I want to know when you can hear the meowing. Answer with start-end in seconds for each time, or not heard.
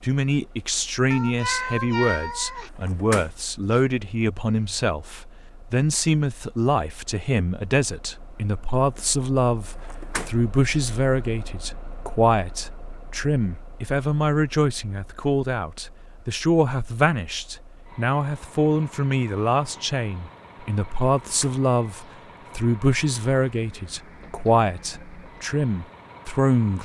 1.1-2.7.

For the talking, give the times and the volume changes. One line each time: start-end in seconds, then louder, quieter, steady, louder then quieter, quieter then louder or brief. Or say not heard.
0.0-26.7 steady.